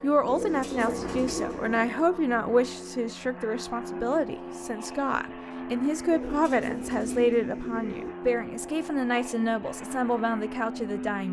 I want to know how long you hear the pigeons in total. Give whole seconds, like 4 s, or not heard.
4 s.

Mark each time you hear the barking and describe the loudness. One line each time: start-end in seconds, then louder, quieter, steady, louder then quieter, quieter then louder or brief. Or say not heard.
not heard.